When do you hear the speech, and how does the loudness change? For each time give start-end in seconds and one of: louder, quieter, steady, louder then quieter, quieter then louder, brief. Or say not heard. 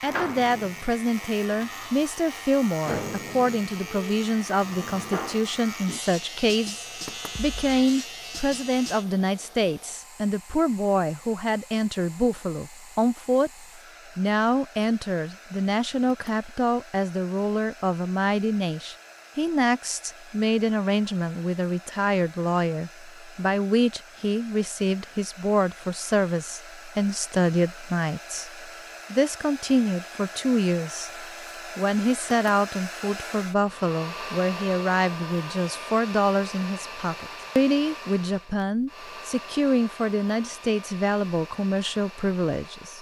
0.0-42.9 steady.